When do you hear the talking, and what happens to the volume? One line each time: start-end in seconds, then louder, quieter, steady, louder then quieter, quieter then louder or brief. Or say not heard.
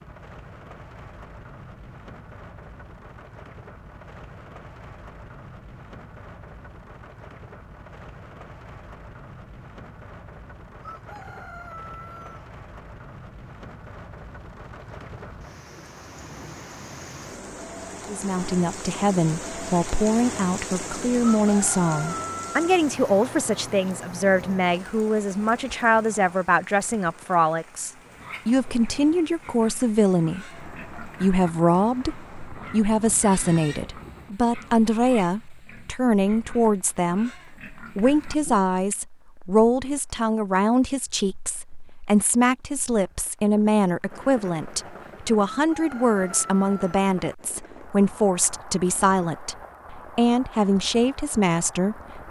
18.1-52.2 steady.